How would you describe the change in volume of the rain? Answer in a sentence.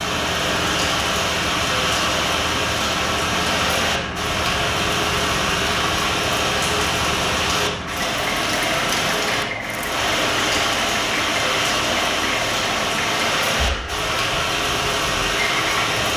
The volume of the rain stays about the same.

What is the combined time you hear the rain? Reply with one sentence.
The rain can be heard for 16 seconds in total.